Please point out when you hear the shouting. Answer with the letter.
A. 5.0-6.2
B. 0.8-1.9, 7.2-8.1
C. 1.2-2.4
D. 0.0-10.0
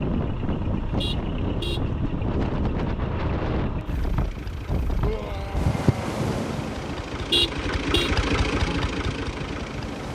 A.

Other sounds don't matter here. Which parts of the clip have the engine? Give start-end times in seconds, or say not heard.
0.0-10.0.